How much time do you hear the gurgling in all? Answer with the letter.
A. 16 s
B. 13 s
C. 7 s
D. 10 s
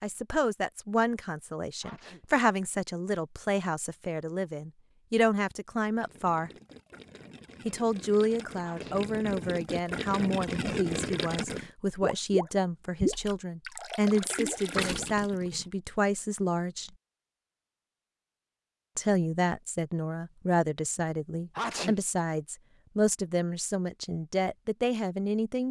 D.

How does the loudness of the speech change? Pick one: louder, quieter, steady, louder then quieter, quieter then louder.
steady.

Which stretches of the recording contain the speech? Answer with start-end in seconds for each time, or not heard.
0.0-6.5, 7.7-16.9, 18.9-25.6.